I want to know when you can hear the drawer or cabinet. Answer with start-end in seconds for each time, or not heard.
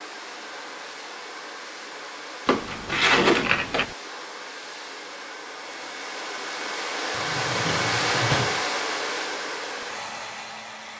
2.5-3.9, 7.1-8.7.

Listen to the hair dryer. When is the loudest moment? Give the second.
8 s.